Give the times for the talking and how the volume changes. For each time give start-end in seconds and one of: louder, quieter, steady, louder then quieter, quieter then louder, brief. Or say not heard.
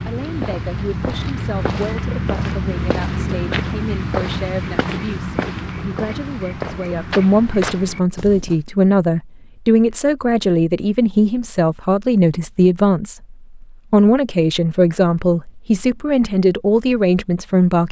0.0-17.8 louder.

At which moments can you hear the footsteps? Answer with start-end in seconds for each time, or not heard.
0.0-8.6.